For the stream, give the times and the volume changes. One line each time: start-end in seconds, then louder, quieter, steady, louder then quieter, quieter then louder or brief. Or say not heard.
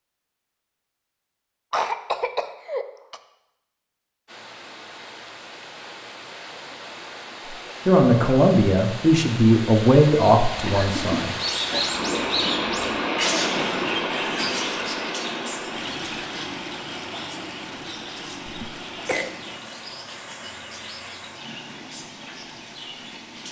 4.2-23.4 louder then quieter.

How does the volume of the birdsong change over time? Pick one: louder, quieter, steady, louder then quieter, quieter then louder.
quieter.